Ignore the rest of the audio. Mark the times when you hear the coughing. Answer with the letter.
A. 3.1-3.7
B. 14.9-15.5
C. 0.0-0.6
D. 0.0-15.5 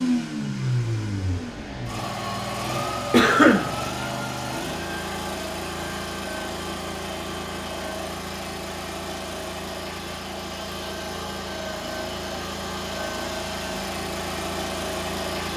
A.